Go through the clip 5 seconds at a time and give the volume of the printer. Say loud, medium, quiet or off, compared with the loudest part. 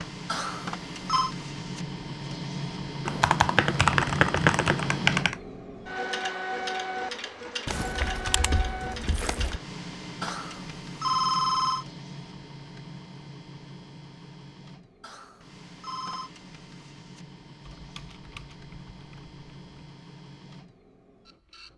loud, loud, medium, quiet, quiet.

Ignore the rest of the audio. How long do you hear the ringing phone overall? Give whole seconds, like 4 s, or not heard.
4 s.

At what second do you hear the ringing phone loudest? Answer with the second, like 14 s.
11 s.